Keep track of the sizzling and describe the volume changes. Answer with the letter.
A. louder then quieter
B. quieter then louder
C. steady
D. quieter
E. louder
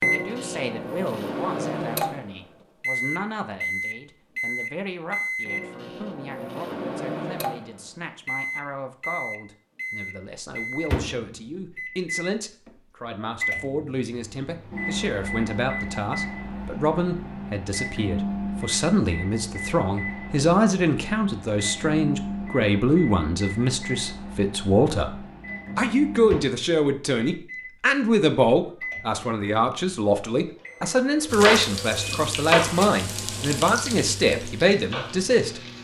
A.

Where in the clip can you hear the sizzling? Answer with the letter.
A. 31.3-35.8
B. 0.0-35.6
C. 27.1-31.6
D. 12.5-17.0
A.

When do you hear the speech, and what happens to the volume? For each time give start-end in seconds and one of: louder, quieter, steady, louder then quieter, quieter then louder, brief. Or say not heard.
0.0-35.6 louder.